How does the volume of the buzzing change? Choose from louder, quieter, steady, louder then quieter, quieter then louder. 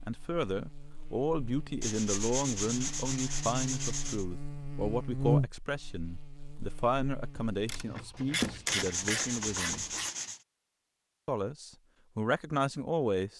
louder then quieter.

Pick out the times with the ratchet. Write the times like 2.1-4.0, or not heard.
7.7-10.1.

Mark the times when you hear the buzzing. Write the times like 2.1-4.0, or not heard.
0.0-7.8.